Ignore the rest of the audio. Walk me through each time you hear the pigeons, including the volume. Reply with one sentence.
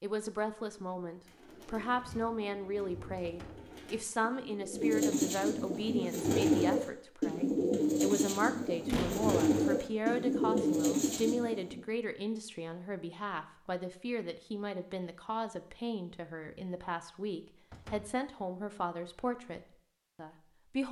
The pigeons can be heard from 1.2 to 11.8 s, getting louder.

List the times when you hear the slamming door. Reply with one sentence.
You can hear the slamming door from 3.2 to 3.6 s, from 8.8 to 9.3 s and from 17.7 to 18.1 s.